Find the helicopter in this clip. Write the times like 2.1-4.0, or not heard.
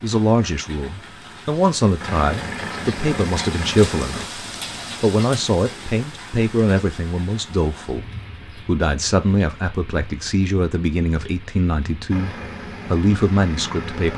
1.9-4.3, 12.1-14.1.